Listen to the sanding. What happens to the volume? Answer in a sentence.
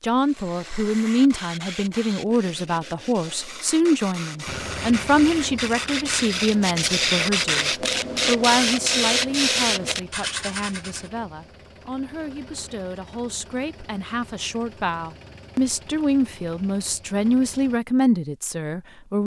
The volume of the sanding goes up.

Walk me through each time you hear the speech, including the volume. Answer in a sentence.
You can hear the speech from 0.0 to 19.2 s, getting quieter then louder.